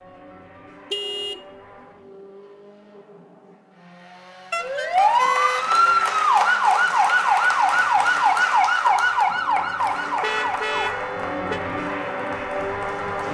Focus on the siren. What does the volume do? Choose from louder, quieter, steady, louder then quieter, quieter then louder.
quieter.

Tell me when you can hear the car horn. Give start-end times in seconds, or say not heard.
0.8-1.9, 4.5-6.0, 10.2-11.6.